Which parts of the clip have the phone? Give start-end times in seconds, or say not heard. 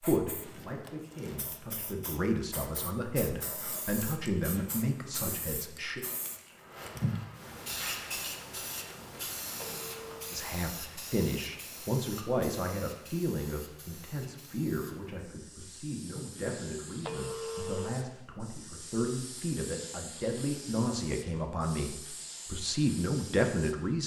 9.6-10.3, 17.0-17.9.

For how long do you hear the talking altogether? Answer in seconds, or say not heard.
20 s.